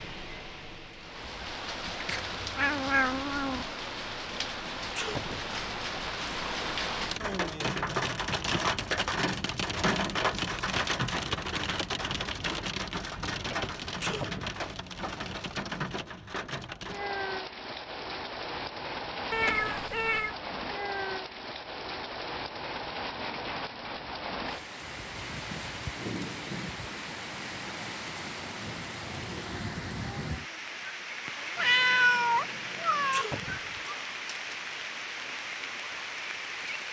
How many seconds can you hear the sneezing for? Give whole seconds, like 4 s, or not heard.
2 s.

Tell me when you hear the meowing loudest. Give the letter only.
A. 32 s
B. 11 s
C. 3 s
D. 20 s
A.